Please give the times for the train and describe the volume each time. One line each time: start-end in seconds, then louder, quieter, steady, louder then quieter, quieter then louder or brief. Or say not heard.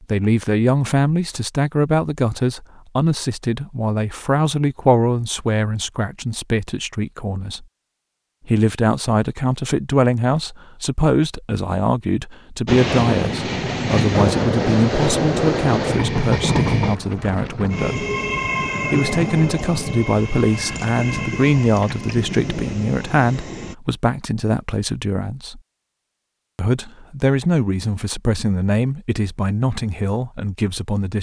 12.7-23.8 quieter.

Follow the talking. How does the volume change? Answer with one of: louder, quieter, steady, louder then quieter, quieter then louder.
steady.